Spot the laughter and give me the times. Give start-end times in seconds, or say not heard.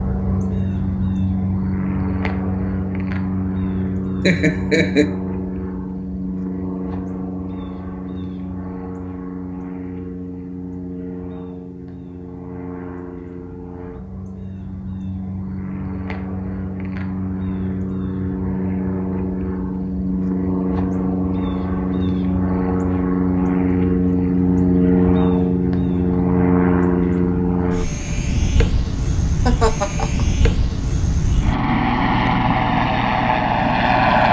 4.2-5.1, 29.4-30.2.